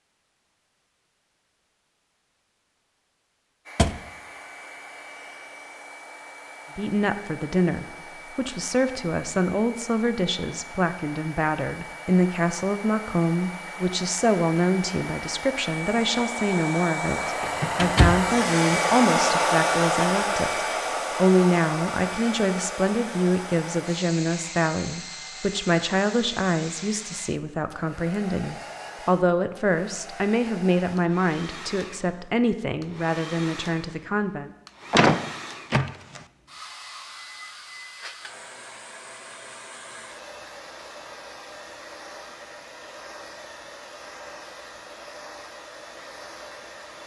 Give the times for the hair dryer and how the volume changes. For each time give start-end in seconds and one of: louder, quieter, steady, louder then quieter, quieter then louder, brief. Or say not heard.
3.6-47.0 louder then quieter.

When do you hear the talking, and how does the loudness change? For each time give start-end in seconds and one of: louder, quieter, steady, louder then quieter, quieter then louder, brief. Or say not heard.
6.8-34.5 steady.